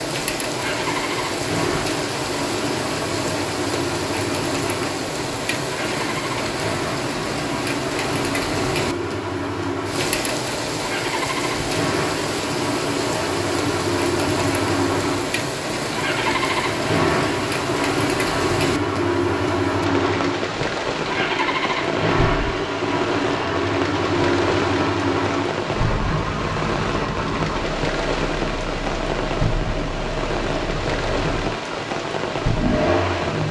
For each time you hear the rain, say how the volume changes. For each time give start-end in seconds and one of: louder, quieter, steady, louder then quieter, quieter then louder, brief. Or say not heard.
0.0-33.4 steady.